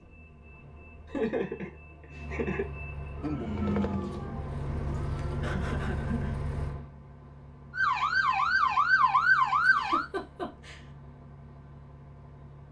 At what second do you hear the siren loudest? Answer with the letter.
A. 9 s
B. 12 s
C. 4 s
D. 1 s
A.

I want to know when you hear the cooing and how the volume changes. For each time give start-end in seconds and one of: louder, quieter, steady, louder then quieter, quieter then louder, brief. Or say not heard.
not heard.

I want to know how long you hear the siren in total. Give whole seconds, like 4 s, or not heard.
5 s.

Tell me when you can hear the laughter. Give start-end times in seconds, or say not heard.
1.1-2.6, 4.9-6.4, 9.7-10.8.